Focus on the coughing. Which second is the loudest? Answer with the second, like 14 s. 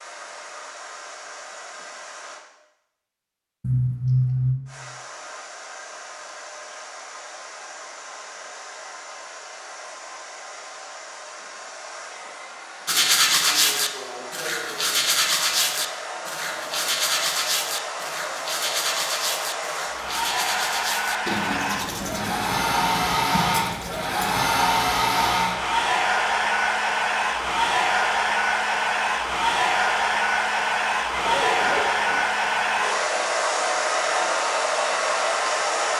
4 s.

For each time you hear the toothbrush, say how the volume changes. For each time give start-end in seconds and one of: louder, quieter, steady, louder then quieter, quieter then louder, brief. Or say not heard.
12.8-24.4 quieter.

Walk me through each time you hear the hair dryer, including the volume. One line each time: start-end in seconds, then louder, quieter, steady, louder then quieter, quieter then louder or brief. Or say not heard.
0.0-2.5 brief
4.7-35.9 louder.